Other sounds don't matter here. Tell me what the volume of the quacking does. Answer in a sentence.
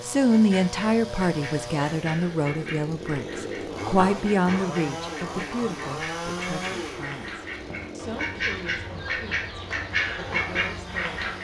The volume of the quacking goes up.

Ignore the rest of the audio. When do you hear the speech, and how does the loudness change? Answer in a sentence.
You can hear the speech from 0.0 to 11.3 s, getting quieter.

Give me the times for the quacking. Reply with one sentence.
The quacking can be heard from 0.3 to 11.3 s.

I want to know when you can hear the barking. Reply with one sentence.
The barking can't be heard in this clip.